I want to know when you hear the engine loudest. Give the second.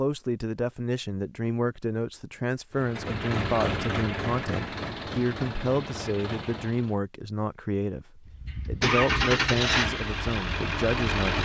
9 s.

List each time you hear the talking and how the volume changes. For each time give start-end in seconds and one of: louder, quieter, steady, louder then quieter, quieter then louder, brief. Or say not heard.
0.0-11.3 steady.